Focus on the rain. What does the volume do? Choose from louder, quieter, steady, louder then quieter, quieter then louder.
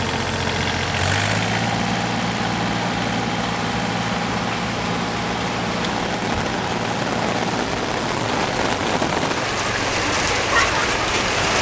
louder.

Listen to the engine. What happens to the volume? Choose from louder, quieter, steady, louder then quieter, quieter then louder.
quieter.